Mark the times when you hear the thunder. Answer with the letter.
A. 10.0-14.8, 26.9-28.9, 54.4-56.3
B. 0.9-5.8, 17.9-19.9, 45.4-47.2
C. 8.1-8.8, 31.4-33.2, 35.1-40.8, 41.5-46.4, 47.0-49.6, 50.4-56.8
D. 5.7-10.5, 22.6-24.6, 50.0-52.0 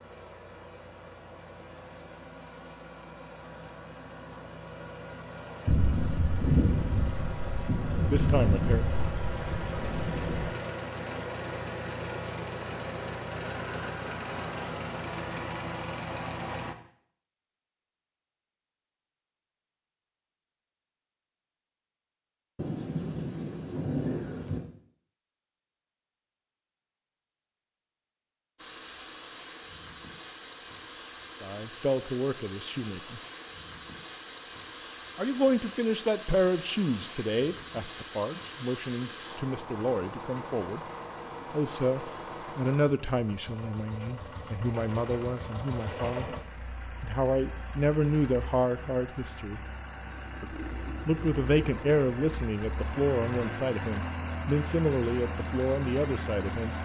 D.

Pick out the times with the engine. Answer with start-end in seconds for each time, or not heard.
0.0-16.8, 28.6-56.8.